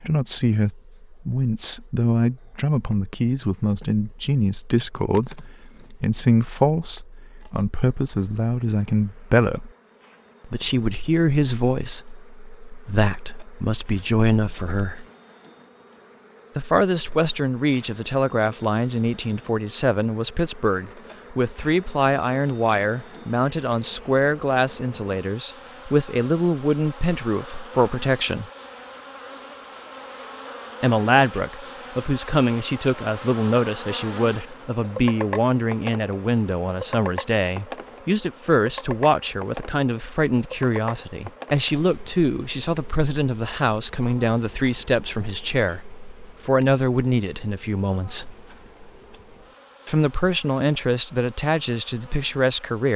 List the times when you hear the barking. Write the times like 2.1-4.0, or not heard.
not heard.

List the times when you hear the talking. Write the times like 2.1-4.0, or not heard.
0.0-9.7, 10.4-15.1, 16.6-28.4, 30.8-48.4, 49.9-52.9.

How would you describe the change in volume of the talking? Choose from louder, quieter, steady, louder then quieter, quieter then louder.
steady.